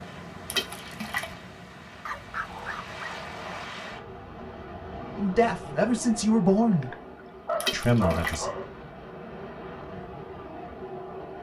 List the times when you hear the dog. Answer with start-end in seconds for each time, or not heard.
2.0-3.7, 6.7-8.7.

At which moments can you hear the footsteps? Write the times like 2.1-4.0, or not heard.
not heard.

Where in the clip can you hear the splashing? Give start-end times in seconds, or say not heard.
0.5-1.2, 7.6-8.4.